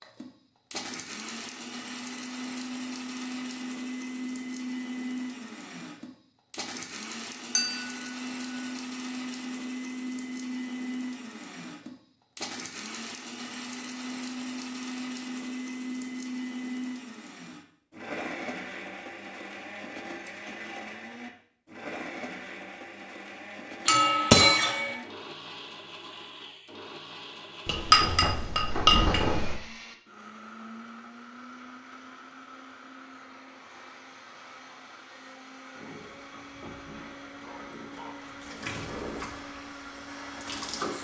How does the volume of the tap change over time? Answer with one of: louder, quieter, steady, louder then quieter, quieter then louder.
louder then quieter.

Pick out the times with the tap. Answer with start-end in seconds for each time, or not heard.
35.7-40.9.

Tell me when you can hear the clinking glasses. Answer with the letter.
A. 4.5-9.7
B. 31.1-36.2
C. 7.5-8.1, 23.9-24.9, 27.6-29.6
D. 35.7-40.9
C.